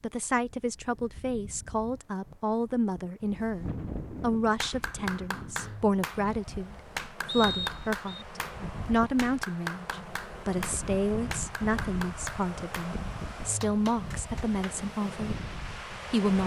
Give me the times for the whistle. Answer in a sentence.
The whistle can be heard from 7.2 to 8.2 s.